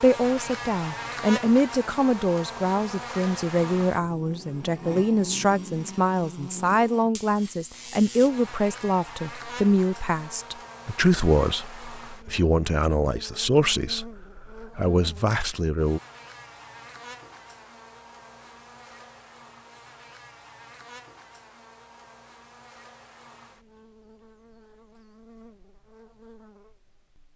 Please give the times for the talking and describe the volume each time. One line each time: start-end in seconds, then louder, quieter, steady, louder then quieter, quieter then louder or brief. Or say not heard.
0.0-16.0 steady.